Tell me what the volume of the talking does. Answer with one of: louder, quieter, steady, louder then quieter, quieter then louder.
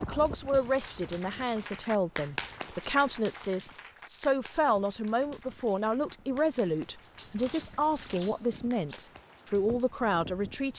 steady.